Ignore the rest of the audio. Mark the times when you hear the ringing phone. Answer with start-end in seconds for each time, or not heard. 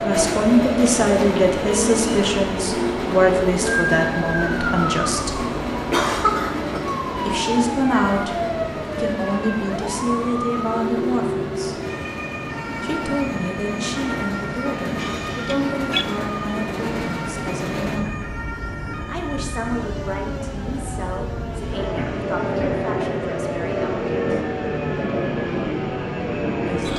14.9-16.1.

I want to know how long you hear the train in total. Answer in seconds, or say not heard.
27 s.